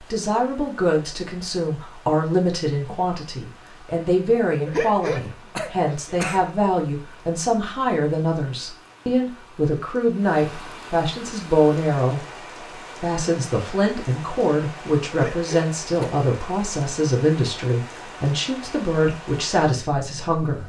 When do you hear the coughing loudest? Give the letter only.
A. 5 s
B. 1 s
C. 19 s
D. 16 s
A.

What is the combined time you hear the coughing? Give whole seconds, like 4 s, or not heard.
3 s.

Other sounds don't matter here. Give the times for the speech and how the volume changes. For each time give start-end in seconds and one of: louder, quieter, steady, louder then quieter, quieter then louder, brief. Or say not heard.
0.0-12.2 steady
13.0-20.6 steady.